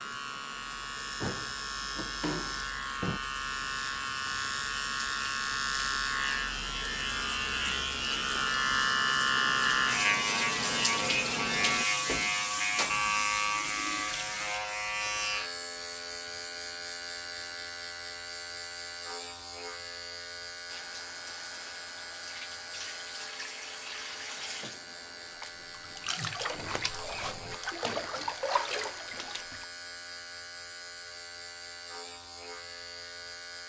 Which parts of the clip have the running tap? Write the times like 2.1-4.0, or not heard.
0.0-14.6, 20.6-29.6.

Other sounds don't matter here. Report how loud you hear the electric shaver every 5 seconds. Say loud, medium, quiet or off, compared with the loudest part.
medium, loud, loud, medium, quiet, quiet, quiet.